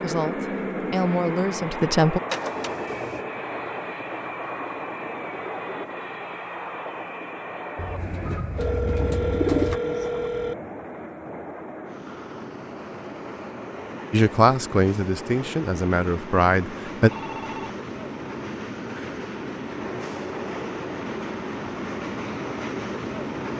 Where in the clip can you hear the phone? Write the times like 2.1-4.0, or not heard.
2.3-3.2, 8.6-10.6, 17.0-17.8.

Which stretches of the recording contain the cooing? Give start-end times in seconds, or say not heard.
7.8-9.8.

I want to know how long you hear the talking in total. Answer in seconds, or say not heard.
5 s.